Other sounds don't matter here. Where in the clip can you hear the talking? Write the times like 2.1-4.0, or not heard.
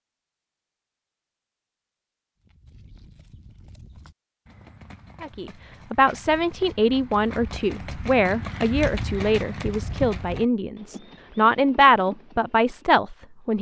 5.2-13.5.